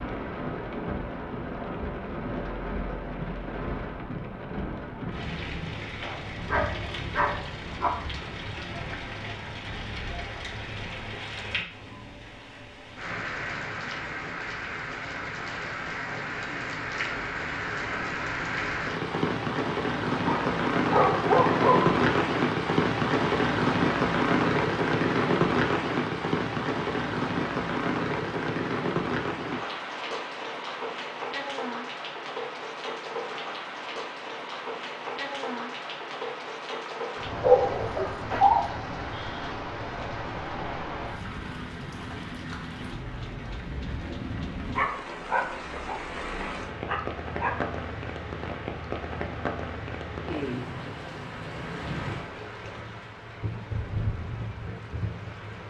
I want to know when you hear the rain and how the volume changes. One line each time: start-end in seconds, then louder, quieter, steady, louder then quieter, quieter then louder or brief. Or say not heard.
0.0-55.6 louder then quieter.